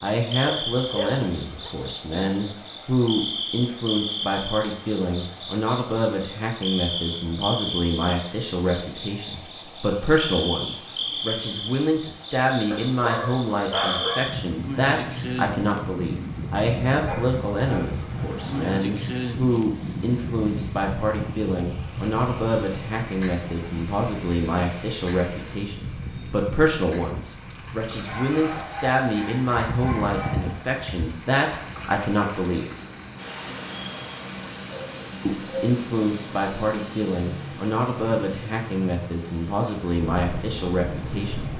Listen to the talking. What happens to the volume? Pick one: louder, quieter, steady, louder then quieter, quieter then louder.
steady.